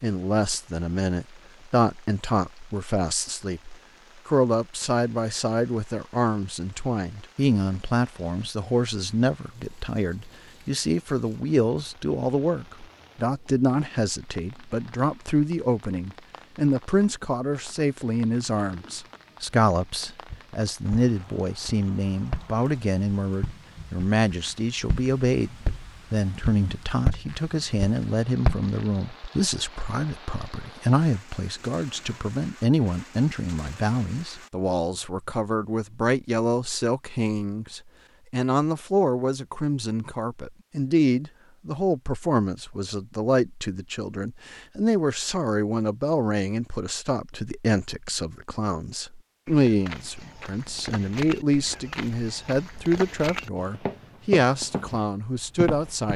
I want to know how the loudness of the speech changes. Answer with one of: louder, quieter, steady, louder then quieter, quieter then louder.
steady.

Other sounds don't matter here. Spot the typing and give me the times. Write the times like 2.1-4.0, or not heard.
not heard.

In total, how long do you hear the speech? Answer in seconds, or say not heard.
56 s.